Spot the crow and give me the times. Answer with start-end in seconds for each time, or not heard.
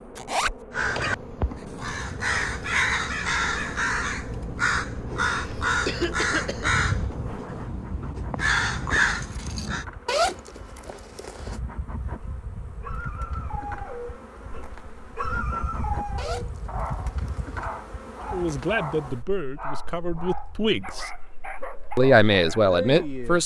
0.7-9.8.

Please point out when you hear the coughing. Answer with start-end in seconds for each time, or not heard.
5.3-6.7.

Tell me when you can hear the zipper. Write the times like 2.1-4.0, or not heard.
0.1-0.6, 10.1-11.6, 16.1-17.6.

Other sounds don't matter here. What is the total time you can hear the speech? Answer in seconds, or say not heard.
4 s.